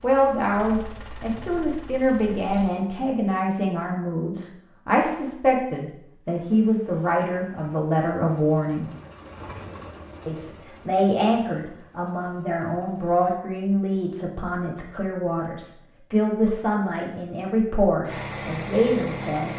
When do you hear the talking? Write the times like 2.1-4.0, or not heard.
0.0-8.9, 10.2-19.5.